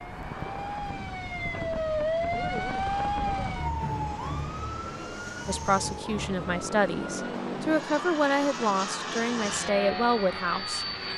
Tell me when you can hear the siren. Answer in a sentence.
The siren can be heard from 0.0 to 11.1 s.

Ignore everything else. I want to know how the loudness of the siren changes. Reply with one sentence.
The volume of the siren goes down.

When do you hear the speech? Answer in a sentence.
You can hear the speech from 5.5 to 10.8 s.